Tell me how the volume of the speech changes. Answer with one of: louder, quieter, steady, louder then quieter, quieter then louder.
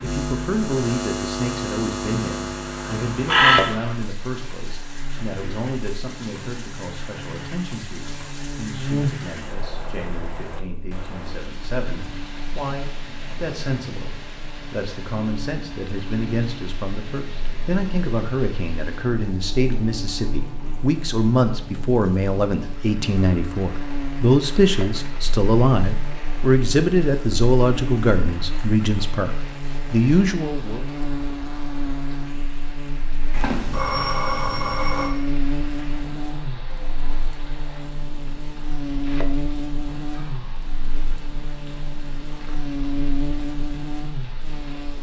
quieter then louder.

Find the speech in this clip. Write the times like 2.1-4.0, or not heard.
0.0-30.9.